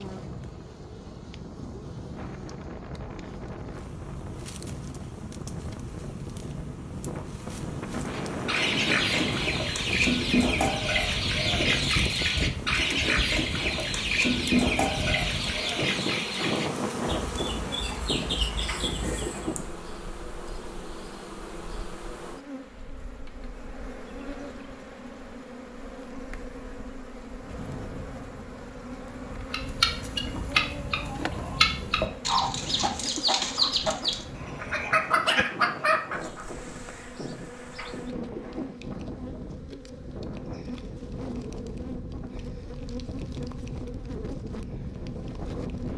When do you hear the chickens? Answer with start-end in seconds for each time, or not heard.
8.1-19.6, 29.4-36.5.